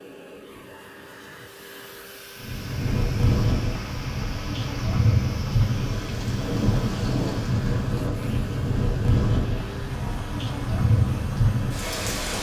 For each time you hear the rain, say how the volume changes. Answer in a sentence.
You can hear the rain from 2.4 to 12.3 s, at a steady volume.